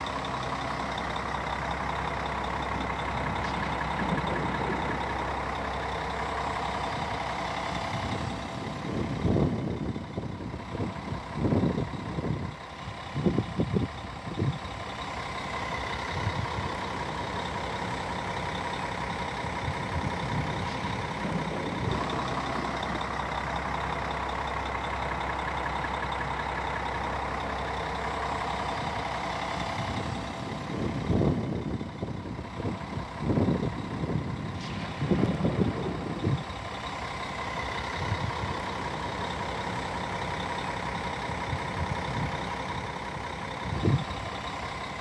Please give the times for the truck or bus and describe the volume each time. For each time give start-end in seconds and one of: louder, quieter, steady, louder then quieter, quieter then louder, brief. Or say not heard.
0.0-44.9 steady.